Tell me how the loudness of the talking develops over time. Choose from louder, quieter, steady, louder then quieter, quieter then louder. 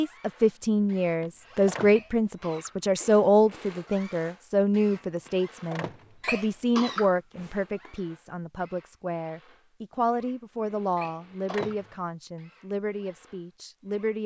quieter.